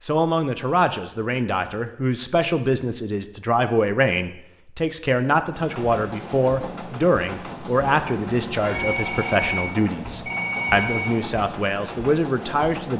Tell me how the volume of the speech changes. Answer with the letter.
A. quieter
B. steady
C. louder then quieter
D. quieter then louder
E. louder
B.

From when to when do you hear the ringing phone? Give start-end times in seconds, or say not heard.
8.6-11.2.